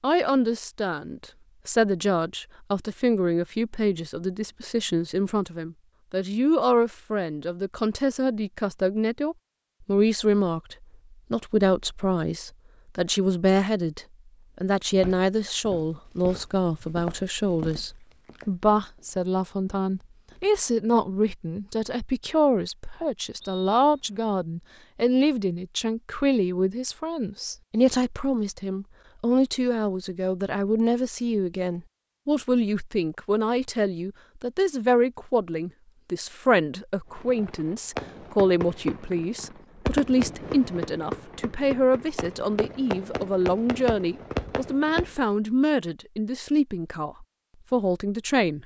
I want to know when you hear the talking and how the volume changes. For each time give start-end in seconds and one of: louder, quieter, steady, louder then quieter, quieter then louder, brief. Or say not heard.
0.0-48.6 steady.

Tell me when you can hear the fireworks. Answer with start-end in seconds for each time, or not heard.
37.1-45.2.